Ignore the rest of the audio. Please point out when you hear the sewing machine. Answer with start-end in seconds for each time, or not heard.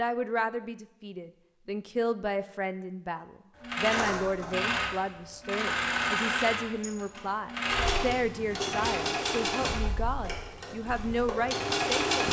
3.5-12.2.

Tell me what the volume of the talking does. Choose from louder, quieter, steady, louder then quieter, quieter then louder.
steady.